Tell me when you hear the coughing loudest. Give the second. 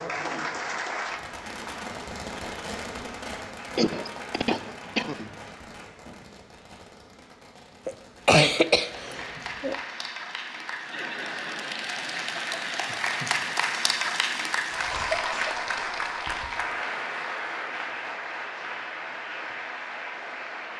8 s.